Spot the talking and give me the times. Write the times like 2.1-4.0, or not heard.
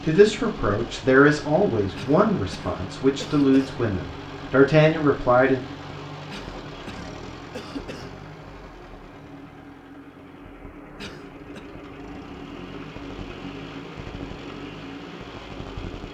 0.0-5.6.